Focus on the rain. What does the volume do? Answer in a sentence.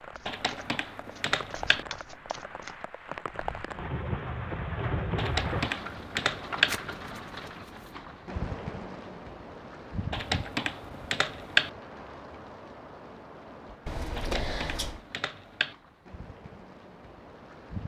The loudness of the rain goes up, then down.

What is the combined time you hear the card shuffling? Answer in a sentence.
The card shuffling can be heard for 5 seconds in total.